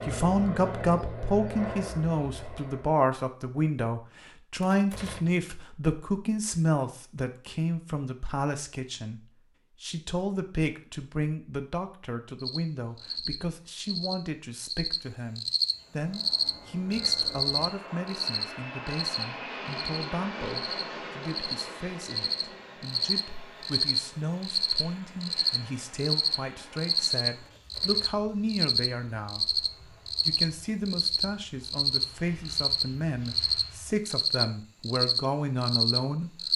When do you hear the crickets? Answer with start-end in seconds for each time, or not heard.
12.3-36.5.